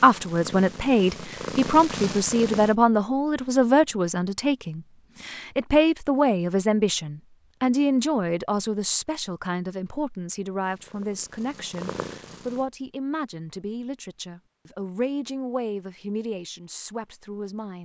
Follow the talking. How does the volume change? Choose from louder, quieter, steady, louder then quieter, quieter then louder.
quieter.